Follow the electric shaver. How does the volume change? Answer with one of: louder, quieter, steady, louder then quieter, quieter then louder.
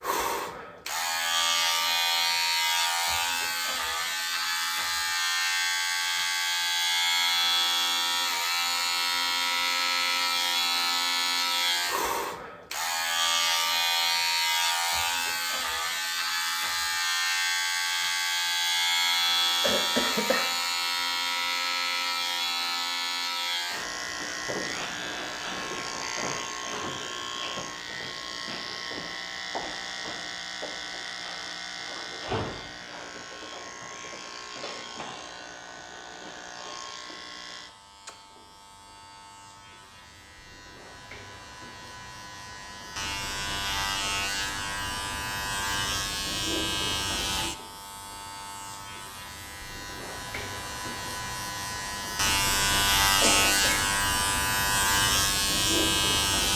quieter then louder.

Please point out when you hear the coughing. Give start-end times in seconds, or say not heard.
19.6-20.4, 53.2-53.9.